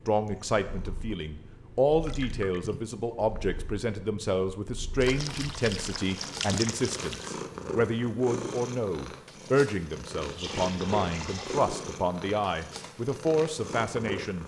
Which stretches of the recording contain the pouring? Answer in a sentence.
The pouring can be heard from 1.8 to 2.8 s, from 5.0 to 7.3 s and from 10.2 to 11.7 s.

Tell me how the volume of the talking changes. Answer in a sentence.
The volume of the talking stays about the same.